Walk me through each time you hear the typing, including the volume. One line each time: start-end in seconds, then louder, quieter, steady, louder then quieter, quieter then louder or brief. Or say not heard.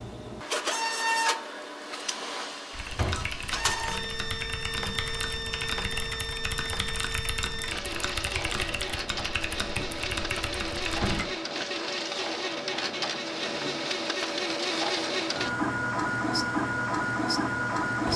2.7-11.2 steady.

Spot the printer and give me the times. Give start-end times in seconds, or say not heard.
0.0-18.1.